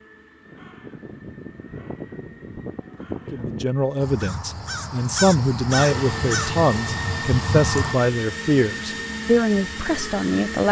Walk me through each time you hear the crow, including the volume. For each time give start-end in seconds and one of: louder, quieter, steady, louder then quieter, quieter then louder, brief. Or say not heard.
0.5-8.0 louder.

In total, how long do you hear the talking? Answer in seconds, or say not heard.
7 s.